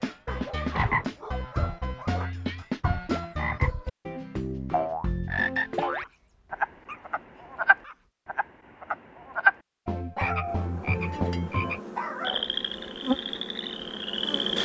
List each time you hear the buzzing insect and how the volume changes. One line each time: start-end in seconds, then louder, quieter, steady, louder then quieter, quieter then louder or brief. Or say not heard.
10.4-14.6 louder then quieter.